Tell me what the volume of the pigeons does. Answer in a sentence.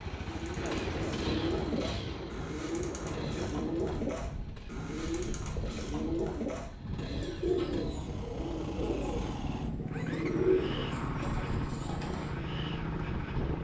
The volume of the pigeons stays about the same.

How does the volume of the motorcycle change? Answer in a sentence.
The volume of the motorcycle goes down, then up.